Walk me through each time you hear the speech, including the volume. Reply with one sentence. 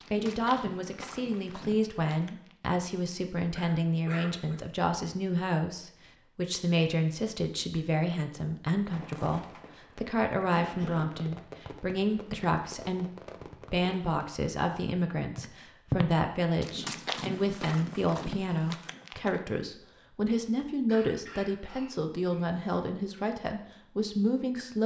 You can hear the speech from 0.1 to 24.8 s, at a steady volume.